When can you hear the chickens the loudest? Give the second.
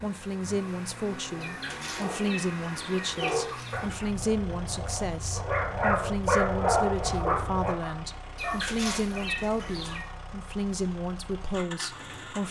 9 s.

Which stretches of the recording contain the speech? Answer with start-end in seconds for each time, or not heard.
0.0-12.4.